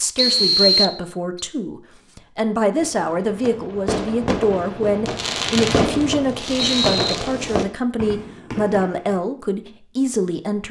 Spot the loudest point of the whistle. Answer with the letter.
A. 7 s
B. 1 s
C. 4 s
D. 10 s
B.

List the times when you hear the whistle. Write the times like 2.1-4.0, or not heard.
0.1-1.4, 5.5-7.2.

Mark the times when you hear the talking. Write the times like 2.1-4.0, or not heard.
0.0-10.6.